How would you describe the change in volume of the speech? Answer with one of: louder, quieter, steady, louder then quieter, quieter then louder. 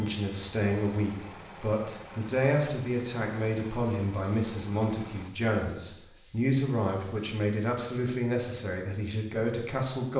steady.